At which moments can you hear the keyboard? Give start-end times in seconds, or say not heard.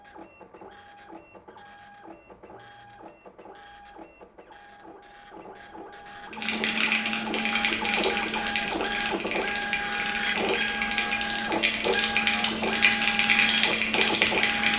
6.3-14.7.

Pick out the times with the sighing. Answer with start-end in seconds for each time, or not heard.
not heard.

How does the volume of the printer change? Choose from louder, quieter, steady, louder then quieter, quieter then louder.
louder.